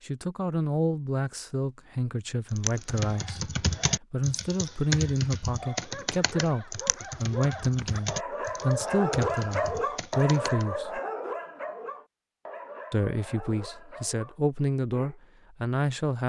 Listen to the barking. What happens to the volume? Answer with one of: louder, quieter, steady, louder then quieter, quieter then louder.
louder then quieter.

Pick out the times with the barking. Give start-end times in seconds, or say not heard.
5.7-15.2.